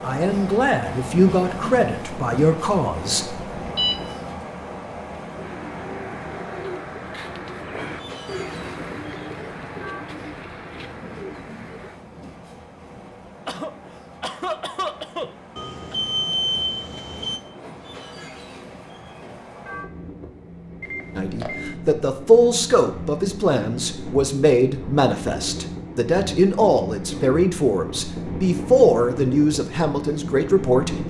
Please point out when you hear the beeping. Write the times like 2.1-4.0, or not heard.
3.5-4.2, 15.6-17.4, 20.8-21.8.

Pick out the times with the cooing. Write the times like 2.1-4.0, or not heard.
5.3-12.0.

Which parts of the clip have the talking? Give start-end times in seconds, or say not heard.
0.0-3.4, 21.1-31.0.